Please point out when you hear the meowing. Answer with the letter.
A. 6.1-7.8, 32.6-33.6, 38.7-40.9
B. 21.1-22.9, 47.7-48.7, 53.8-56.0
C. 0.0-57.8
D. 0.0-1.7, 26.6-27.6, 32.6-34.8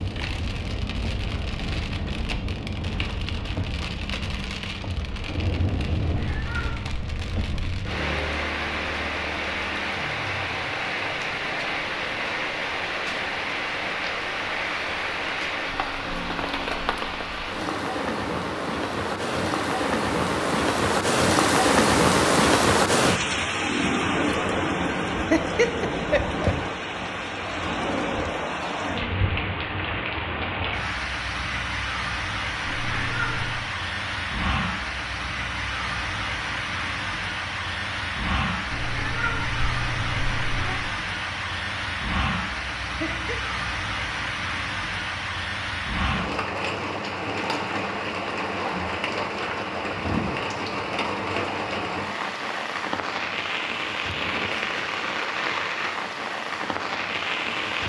A.